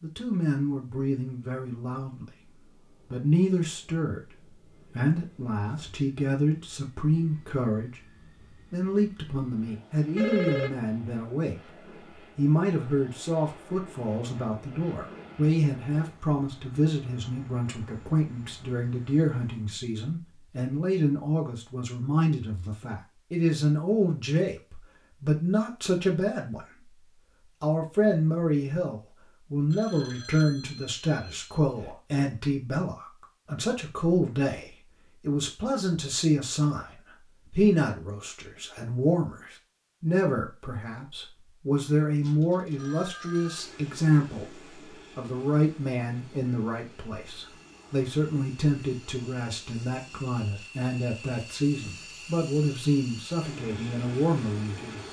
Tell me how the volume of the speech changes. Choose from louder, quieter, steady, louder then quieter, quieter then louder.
steady.